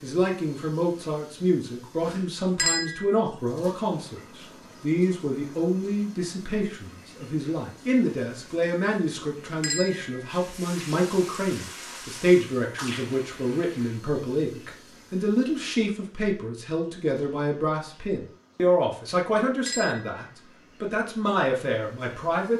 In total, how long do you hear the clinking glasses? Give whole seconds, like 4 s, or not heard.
2 s.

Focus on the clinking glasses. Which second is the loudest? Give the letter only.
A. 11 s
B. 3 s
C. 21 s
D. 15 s
B.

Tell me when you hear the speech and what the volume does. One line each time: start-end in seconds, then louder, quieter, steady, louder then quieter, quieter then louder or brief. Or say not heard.
0.0-22.5 steady.